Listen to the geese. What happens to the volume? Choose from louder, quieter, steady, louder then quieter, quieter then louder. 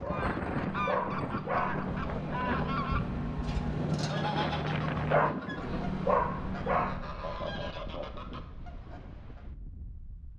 quieter.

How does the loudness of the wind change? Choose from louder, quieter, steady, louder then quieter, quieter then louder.
quieter.